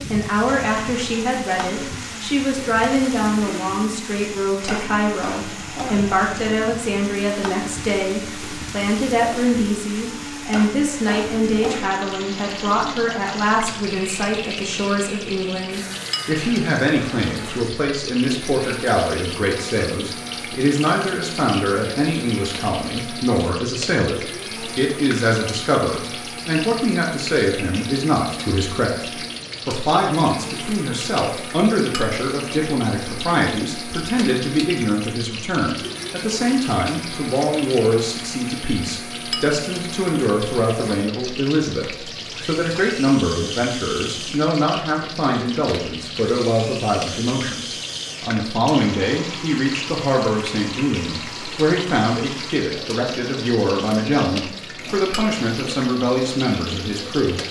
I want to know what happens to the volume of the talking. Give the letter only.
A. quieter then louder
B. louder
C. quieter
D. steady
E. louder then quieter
D.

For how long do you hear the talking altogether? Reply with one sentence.
The talking can be heard for 57 seconds in total.